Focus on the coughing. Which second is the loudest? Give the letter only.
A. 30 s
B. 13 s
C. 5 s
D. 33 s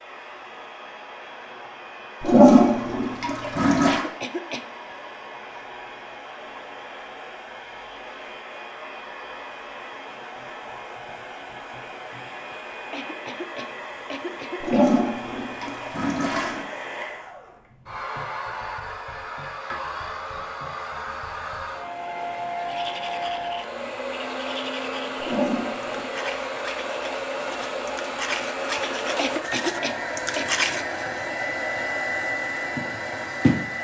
A.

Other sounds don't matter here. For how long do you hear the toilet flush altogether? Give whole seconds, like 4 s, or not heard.
5 s.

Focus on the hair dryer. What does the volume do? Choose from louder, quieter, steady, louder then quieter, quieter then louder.
louder.